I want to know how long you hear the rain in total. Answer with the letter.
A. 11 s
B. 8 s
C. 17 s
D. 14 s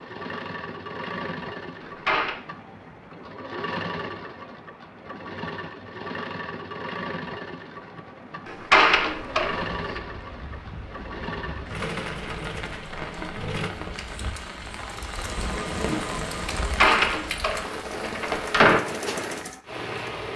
A.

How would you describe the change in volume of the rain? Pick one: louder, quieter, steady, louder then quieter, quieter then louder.
louder.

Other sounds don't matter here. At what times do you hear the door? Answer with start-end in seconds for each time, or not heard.
1.8-2.4, 8.4-10.0, 16.8-18.8.